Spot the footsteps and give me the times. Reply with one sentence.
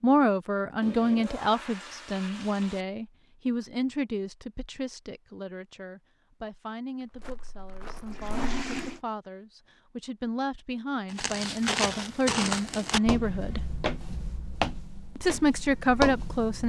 You can hear the footsteps from 7.0 to 9.0 s and from 11.1 to 16.6 s.